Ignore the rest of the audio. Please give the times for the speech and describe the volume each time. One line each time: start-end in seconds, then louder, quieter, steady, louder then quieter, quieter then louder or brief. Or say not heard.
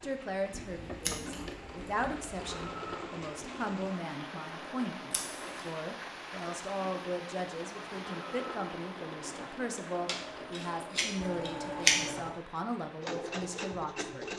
0.0-14.3 steady.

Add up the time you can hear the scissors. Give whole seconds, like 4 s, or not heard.
5 s.